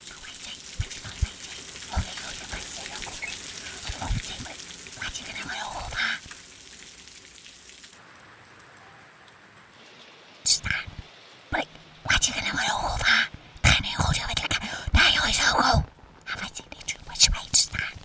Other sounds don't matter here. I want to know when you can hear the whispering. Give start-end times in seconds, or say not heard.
0.0-6.3, 10.4-18.0.